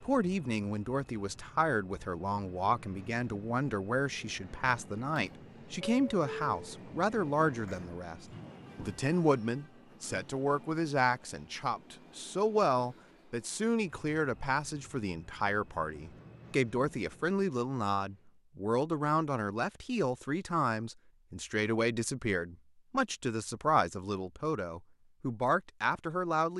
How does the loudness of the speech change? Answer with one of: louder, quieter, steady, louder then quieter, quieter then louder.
steady.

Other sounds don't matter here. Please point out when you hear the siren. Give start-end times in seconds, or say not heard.
not heard.